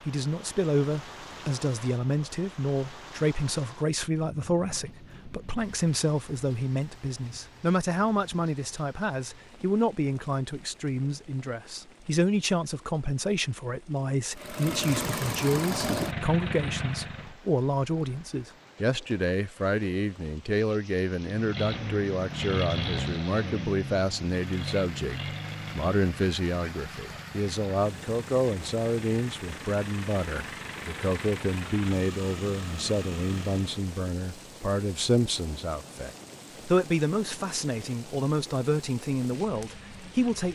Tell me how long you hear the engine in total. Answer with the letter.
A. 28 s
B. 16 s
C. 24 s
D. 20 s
B.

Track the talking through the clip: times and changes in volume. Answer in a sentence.
You can hear the talking from 0.1 to 40.5 s, at a steady volume.